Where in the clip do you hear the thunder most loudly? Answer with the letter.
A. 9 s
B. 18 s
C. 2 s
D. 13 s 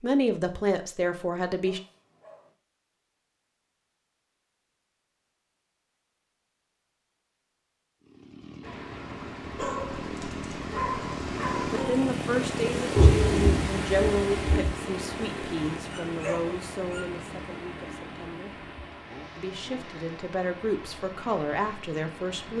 D.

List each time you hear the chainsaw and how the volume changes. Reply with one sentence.
You can hear the chainsaw from 8.0 to 22.5 s, getting louder then quieter.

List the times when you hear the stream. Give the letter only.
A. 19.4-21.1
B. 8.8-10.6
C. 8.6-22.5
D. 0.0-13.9
C.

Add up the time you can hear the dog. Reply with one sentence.
The dog can be heard for 5 seconds in total.